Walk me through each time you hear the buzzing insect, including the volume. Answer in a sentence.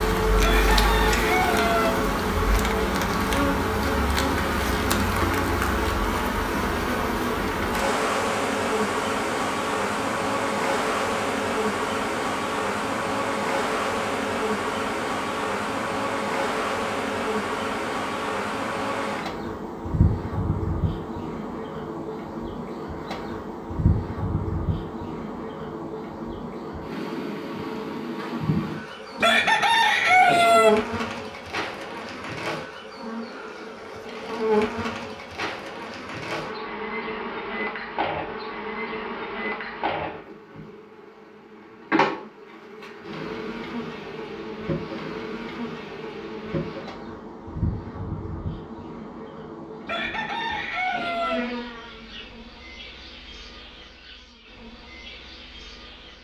The buzzing insect can be heard from 0.0 to 56.1 s, getting quieter.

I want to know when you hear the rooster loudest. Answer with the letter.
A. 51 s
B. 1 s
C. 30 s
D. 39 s
C.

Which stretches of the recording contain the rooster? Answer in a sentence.
The rooster can be heard from 0.4 to 1.9 s, from 29.2 to 30.7 s and from 49.9 to 51.4 s.